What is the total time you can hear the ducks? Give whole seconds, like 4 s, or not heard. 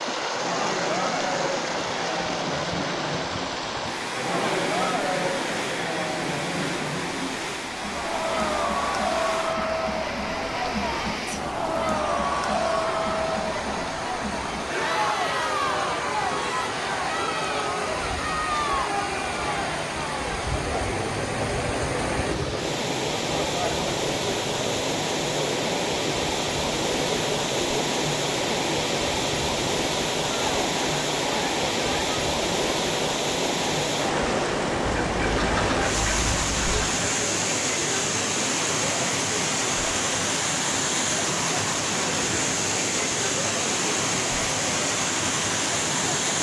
2 s.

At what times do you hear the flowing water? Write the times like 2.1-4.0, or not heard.
0.0-46.3.